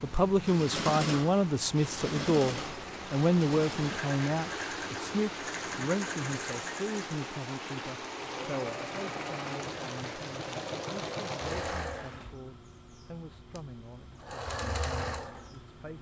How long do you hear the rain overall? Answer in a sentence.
The rain can be heard for 12 seconds in total.